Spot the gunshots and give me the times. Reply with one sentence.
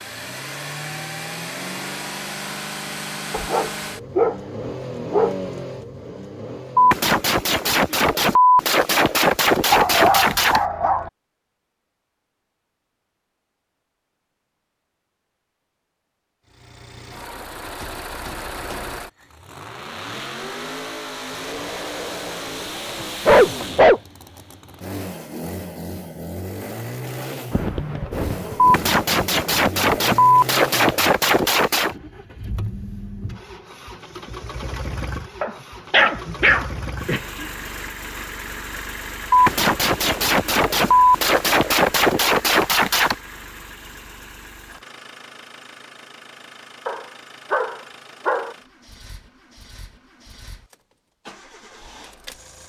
You can hear the gunshots from 6.8 to 10.6 s, from 28.6 to 31.9 s and from 39.3 to 43.1 s.